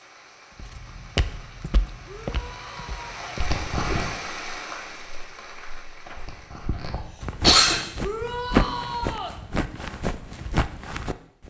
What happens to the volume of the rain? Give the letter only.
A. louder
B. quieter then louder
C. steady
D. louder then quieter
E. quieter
D.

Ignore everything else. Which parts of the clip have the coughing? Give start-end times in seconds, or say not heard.
3.4-4.0, 6.2-7.8.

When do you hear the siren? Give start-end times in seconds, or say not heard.
not heard.